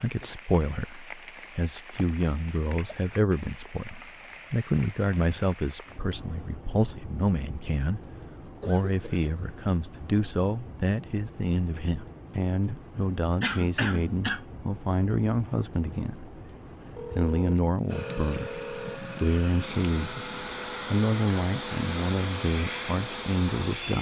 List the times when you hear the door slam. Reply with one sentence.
You can't hear the door slam here.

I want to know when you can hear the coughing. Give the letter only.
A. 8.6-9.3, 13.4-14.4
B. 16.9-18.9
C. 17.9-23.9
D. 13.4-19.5
A.